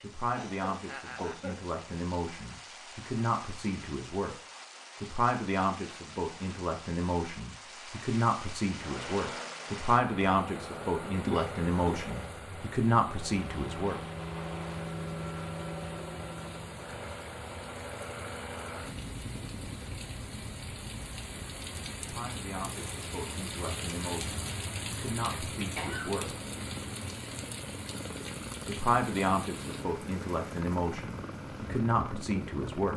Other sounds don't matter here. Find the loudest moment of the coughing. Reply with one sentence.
The volume of the coughing peaks at 11 seconds.